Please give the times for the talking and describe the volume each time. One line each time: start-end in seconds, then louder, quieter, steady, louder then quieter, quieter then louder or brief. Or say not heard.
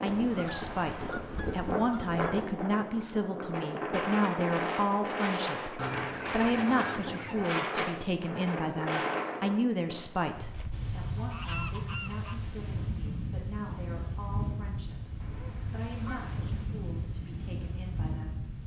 0.0-18.4 quieter.